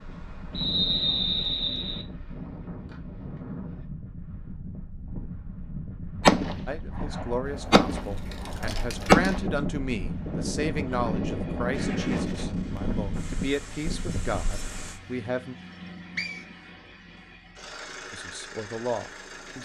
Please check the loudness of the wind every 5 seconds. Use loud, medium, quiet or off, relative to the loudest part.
medium, medium, loud, off.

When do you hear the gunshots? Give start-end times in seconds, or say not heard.
6.2-9.4.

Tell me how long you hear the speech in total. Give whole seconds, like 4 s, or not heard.
10 s.